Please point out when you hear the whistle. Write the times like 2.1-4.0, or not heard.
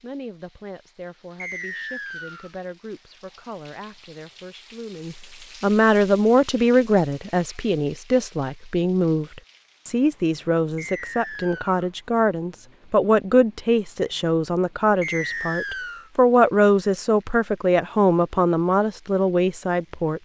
1.4-2.5, 10.8-11.8, 15.0-16.1.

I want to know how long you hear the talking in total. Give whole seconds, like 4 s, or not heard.
20 s.